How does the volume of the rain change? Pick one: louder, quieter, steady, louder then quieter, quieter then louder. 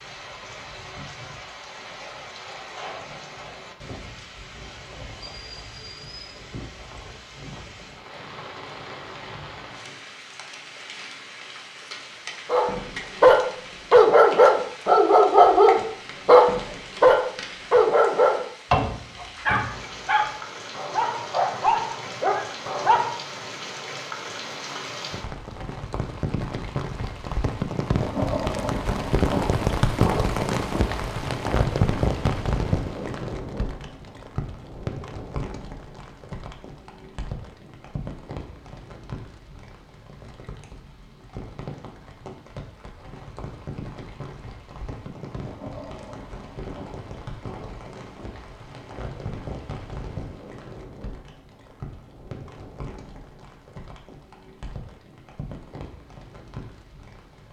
louder then quieter.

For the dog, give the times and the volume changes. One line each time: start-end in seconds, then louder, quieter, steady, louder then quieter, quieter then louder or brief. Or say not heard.
12.5-23.1 quieter.